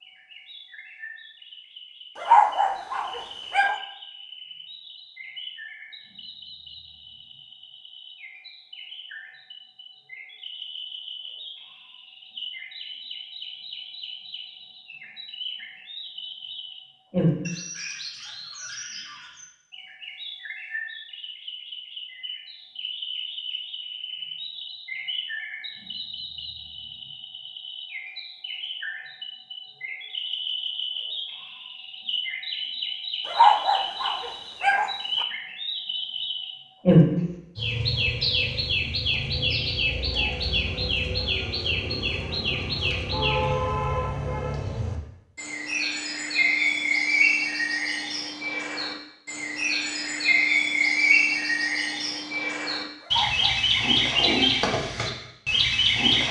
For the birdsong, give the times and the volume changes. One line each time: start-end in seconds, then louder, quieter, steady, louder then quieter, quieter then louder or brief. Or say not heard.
0.0-56.2 louder.